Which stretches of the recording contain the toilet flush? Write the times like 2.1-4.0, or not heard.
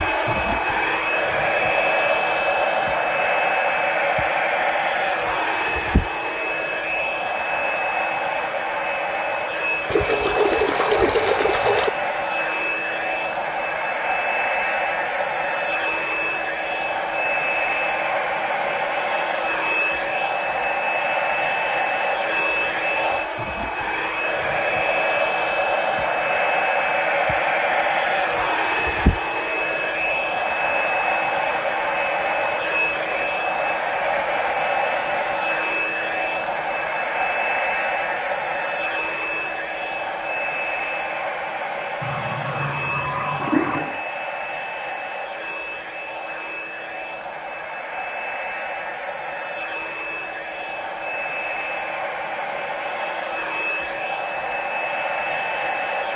9.9-11.9, 42.0-44.0.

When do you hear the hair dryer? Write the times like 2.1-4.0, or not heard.
0.0-56.1.